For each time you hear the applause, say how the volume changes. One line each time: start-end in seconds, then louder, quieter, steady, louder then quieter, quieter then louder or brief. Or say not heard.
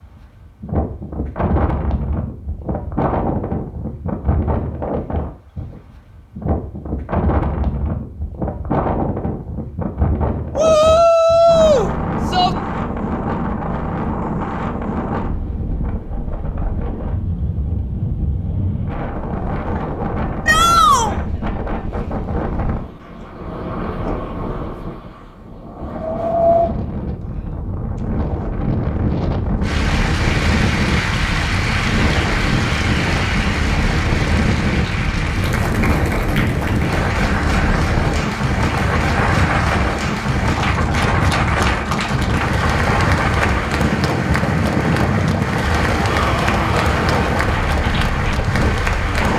29.6-49.3 steady.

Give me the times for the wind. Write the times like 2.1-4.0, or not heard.
0.0-49.3.